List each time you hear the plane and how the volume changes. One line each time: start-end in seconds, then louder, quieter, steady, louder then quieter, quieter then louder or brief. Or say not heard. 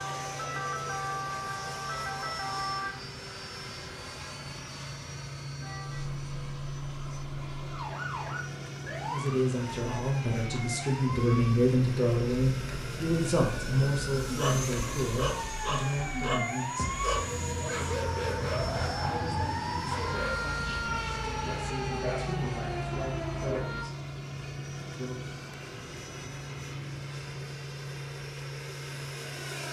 0.0-29.6 steady.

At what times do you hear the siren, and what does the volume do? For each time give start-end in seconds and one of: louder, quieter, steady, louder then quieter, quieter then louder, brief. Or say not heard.
0.0-2.9 brief
5.6-23.9 louder.